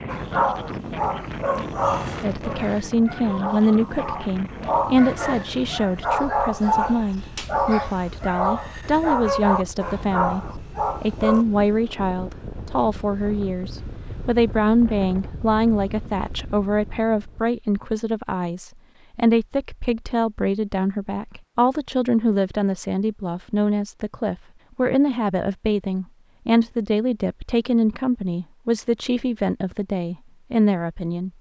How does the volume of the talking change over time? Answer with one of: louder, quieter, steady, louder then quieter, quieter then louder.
steady.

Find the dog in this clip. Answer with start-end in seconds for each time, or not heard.
0.1-11.4.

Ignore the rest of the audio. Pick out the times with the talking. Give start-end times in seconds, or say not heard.
2.2-31.3.